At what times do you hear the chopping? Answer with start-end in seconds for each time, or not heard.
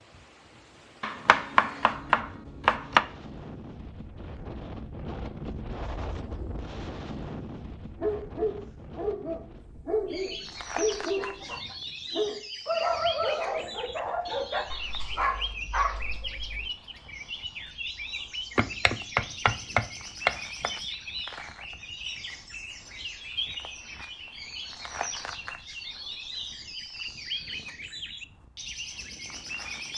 1.0-3.0, 18.6-20.7.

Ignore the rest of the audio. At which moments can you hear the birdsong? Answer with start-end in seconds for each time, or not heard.
10.1-29.9.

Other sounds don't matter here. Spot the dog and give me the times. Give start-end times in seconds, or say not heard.
8.0-16.7.